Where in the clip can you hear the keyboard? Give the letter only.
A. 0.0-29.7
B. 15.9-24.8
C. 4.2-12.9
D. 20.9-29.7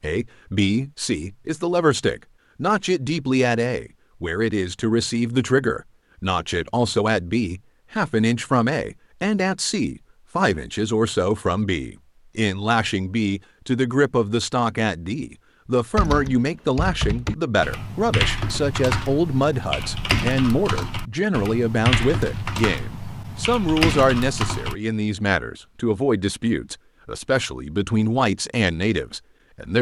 B.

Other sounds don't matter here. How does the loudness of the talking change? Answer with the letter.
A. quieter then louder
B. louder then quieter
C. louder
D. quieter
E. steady
E.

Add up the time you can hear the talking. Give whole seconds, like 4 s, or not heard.
30 s.